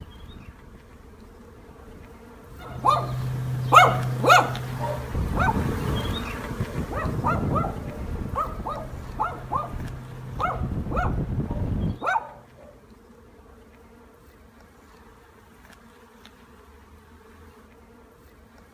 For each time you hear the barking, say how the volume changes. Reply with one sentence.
You can hear the barking from 2.8 to 12.7 s, getting quieter.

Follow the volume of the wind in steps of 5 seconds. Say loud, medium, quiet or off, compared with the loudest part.
quiet, loud, loud, off.